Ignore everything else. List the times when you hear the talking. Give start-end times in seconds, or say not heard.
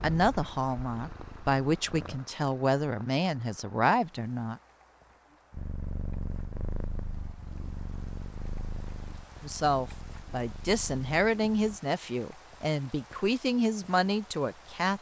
0.0-4.6, 9.4-14.9.